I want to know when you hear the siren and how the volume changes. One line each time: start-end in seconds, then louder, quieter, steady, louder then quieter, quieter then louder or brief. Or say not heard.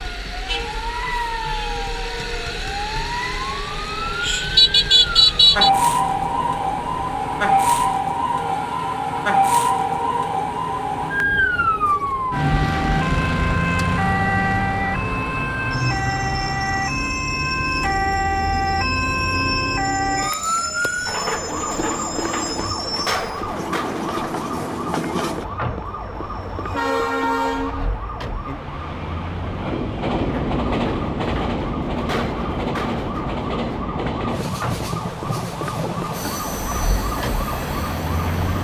0.0-38.5 quieter.